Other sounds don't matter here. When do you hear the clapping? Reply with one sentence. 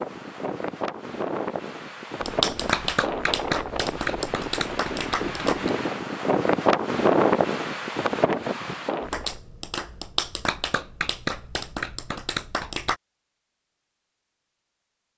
You can hear the clapping from 2.2 to 5.7 s and from 9.0 to 12.9 s.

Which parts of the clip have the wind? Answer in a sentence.
The wind can be heard from 0.0 to 9.4 s.